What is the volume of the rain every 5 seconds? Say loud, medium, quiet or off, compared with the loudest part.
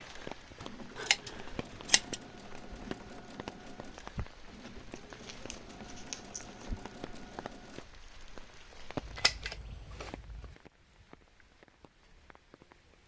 loud, loud, medium.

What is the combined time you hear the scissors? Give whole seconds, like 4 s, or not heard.
4 s.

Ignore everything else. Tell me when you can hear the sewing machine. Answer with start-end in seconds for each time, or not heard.
0.0-7.8.